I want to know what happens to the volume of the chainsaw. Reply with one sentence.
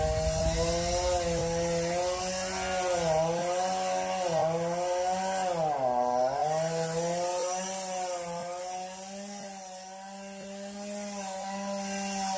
The loudness of the chainsaw goes down.